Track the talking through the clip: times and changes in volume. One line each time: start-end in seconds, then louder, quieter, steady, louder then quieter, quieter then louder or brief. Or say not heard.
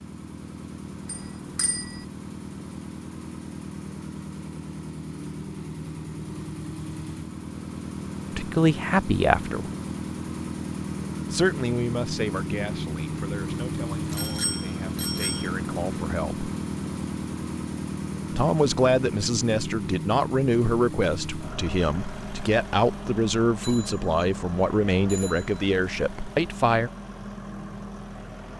8.3-9.7 brief
11.3-16.4 quieter then louder
18.3-26.9 steady.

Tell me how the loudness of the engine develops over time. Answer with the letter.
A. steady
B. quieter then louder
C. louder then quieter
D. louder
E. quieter
C.